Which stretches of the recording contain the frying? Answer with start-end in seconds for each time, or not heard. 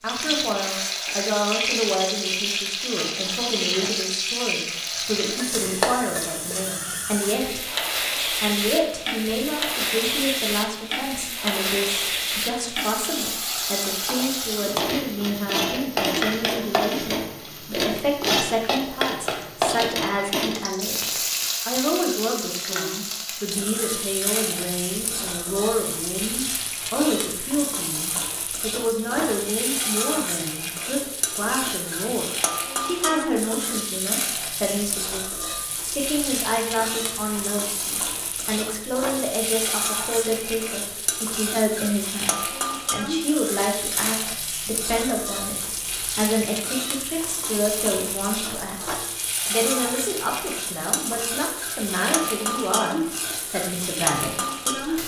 0.0-55.0.